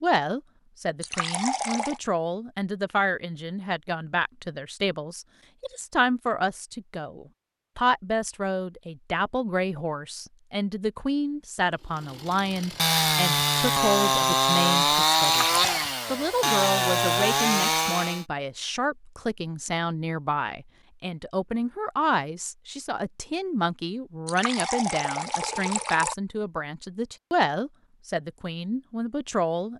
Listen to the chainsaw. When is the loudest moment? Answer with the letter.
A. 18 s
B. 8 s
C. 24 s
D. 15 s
D.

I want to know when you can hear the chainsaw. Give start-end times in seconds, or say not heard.
12.0-18.2.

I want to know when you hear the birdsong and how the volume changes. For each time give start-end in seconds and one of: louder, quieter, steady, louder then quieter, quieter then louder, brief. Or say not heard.
not heard.